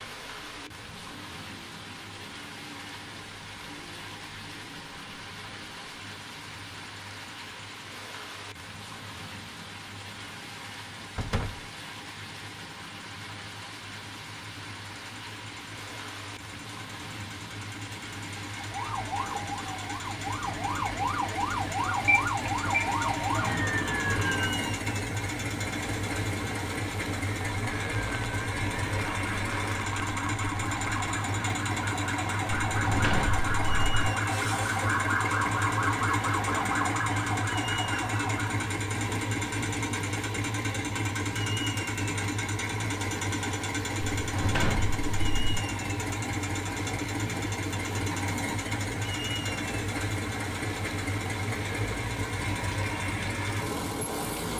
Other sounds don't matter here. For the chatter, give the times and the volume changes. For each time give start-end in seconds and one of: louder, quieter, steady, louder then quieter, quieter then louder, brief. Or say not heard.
not heard.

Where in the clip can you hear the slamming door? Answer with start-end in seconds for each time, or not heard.
11.2-11.6, 32.6-33.9, 44.0-45.5.